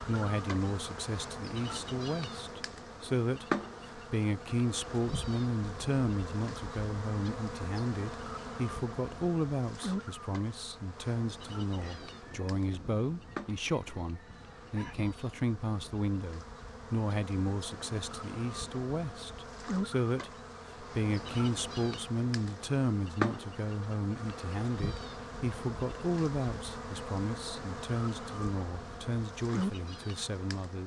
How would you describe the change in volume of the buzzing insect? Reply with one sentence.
The volume of the buzzing insect goes down, then up.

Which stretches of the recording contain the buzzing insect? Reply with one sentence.
The buzzing insect can be heard from 0.0 to 30.8 s.